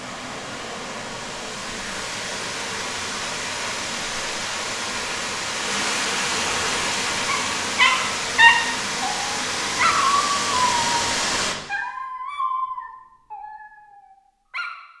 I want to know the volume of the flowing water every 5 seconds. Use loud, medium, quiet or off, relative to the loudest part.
medium, loud, loud.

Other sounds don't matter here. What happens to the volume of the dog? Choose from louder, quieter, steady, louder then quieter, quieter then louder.
quieter.